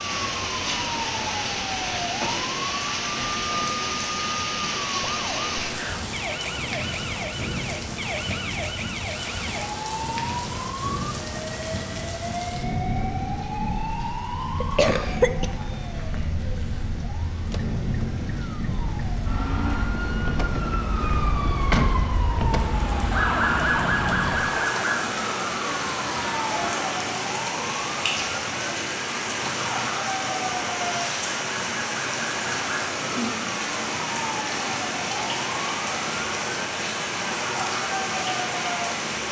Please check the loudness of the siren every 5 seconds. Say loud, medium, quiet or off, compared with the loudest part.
medium, medium, medium, medium, loud, medium, medium, medium.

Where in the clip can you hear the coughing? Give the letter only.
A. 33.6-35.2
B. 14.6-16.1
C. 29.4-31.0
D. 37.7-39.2
B.